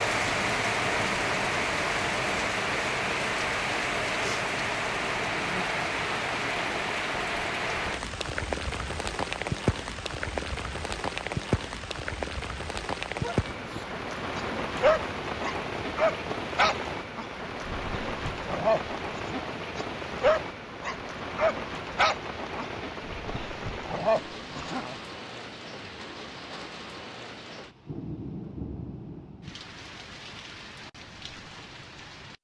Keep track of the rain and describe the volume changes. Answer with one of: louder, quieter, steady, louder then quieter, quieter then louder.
quieter.